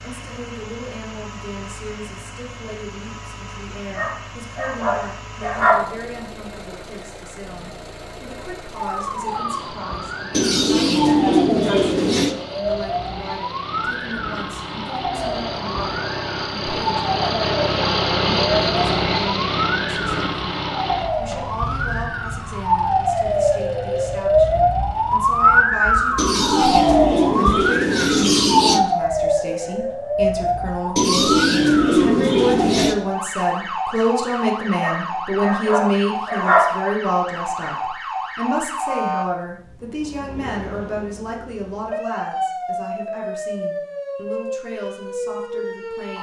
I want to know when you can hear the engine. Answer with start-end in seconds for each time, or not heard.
0.0-25.6.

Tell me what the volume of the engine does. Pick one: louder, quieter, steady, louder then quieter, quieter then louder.
louder then quieter.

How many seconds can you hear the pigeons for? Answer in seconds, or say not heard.
7 s.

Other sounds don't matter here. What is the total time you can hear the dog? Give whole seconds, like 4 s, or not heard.
4 s.